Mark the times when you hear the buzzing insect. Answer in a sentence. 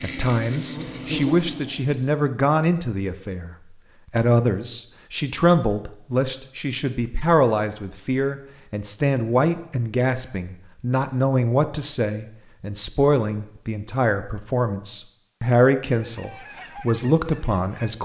You can hear the buzzing insect from 0.0 to 2.0 s.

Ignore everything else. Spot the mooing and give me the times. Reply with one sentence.
You can't hear the mooing here.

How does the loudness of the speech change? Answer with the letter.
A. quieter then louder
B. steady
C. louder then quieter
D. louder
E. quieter
B.